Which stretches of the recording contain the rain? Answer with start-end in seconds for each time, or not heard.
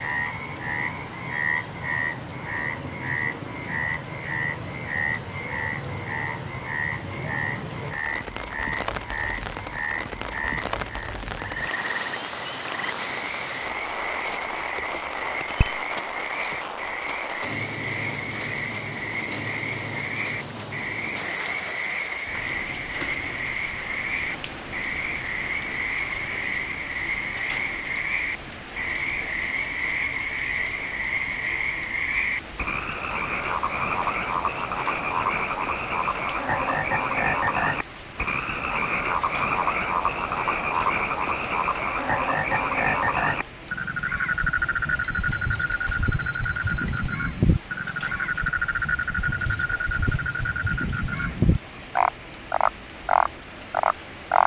0.0-54.4.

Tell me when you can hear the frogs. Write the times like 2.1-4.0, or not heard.
0.0-54.4.